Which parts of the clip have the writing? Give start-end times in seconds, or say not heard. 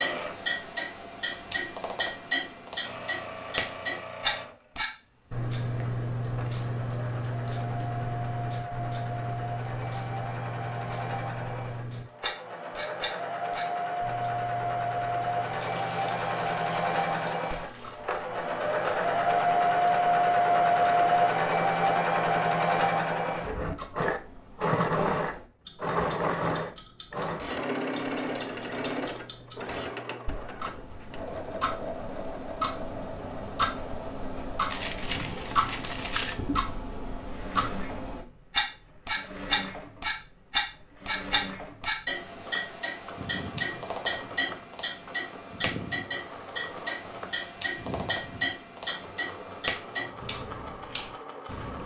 not heard.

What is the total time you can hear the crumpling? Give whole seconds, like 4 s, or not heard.
4 s.